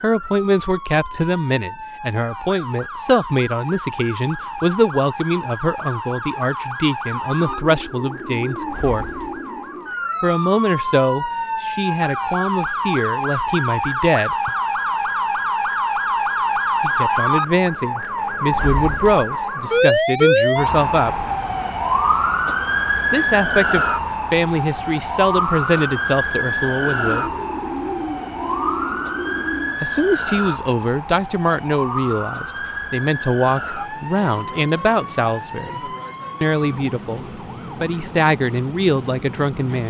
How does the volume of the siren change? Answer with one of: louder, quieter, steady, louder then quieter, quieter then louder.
louder then quieter.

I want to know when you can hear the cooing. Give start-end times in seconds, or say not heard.
7.4-9.9, 27.0-29.8.